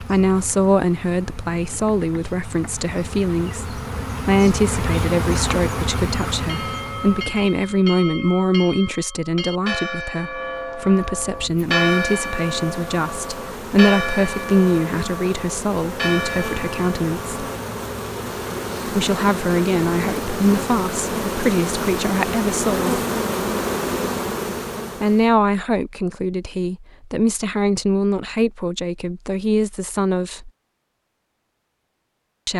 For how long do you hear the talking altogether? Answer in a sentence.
You can hear the talking for 27 seconds altogether.